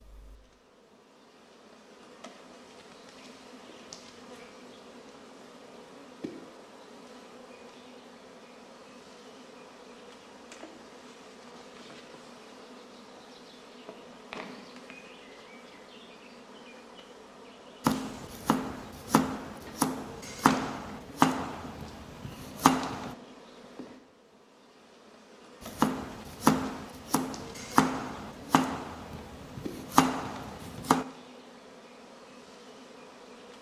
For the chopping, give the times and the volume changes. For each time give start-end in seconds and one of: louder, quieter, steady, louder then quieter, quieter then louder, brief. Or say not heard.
17.9-23.1 louder
25.6-31.1 quieter then louder.